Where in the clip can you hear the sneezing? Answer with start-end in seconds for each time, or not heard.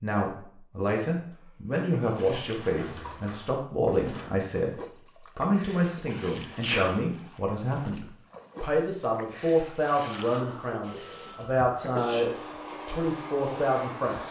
1.3-2.0, 6.5-7.0, 10.8-12.2.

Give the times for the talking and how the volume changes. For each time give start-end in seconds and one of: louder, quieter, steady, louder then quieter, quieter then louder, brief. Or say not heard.
0.0-14.2 steady.